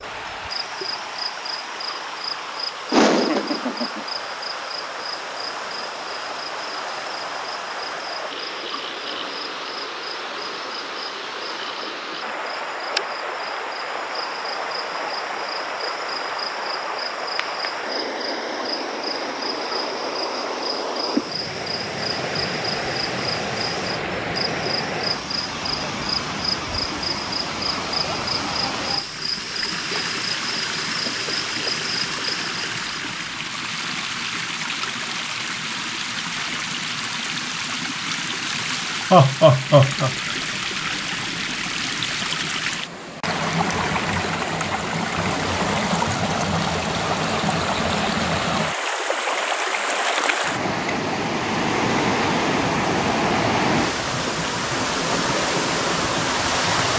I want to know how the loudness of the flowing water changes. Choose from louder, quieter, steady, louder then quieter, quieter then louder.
louder.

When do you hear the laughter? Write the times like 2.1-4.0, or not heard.
2.9-4.0, 39.1-40.1.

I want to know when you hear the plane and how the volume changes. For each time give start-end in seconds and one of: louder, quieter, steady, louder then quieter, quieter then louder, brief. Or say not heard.
not heard.